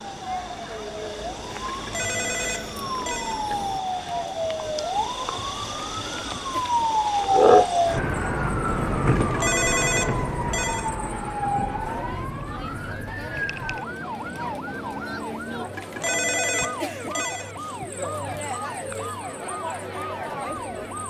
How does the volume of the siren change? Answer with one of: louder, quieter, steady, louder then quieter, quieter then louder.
louder then quieter.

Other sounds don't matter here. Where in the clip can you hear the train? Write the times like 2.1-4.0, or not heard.
0.0-3.8.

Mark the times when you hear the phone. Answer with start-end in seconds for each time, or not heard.
1.6-3.5, 9.1-10.9, 15.8-17.6.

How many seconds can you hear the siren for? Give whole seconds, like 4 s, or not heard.
21 s.